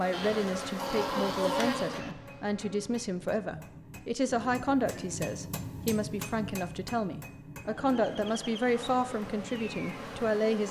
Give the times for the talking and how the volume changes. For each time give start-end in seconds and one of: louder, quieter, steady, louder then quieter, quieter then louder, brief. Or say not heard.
0.0-10.6 steady.